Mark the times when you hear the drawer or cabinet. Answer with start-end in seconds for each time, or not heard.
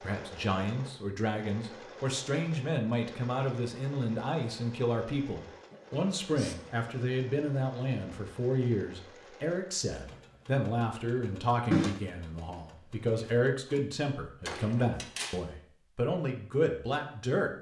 14.4-15.4.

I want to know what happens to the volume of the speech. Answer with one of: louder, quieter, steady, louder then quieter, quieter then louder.
steady.